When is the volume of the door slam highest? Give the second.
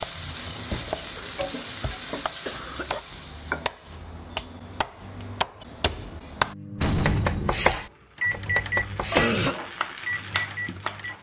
7 s.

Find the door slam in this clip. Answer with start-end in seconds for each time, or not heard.
0.7-1.2, 6.8-7.8.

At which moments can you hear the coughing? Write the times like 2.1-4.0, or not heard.
1.1-3.0, 9.2-9.6.